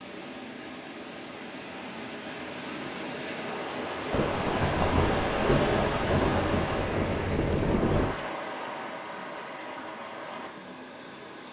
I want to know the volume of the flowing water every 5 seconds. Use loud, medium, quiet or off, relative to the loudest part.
loud, loud, medium.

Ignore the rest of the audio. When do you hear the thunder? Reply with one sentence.
The thunder can be heard from 4.1 to 8.2 s.